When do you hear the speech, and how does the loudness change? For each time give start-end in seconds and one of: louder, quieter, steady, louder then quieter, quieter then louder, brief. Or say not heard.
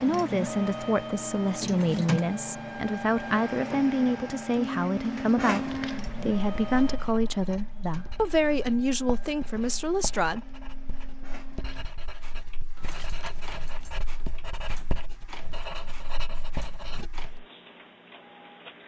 0.0-10.4 steady.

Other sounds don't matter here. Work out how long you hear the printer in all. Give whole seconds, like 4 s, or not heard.
19 s.